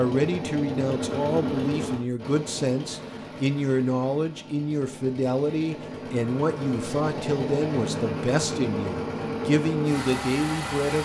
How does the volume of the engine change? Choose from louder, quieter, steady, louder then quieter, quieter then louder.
quieter then louder.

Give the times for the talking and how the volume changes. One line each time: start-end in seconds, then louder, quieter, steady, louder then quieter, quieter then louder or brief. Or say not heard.
0.0-10.9 steady.